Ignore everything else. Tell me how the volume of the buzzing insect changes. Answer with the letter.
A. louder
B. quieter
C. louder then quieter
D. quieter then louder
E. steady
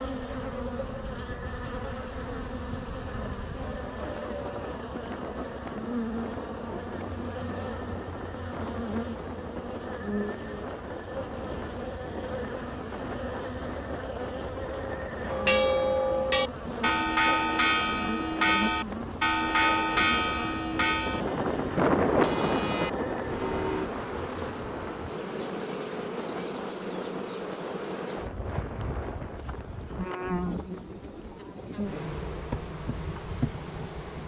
E.